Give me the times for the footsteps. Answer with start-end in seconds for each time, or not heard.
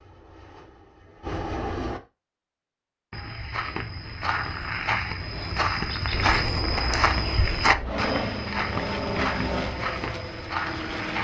3.1-11.1.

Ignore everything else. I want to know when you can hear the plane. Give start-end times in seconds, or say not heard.
0.0-2.0, 6.1-11.1.